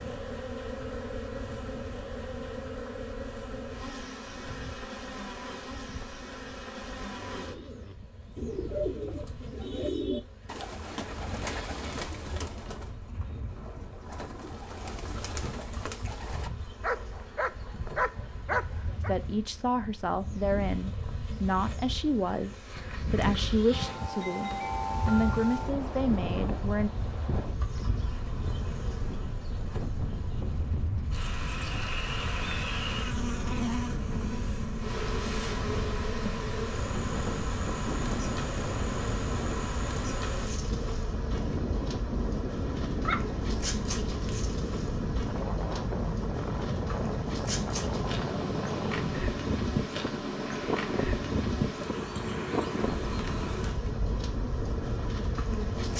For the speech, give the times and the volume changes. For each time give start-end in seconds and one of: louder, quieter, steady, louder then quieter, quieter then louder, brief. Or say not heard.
19.0-26.9 steady.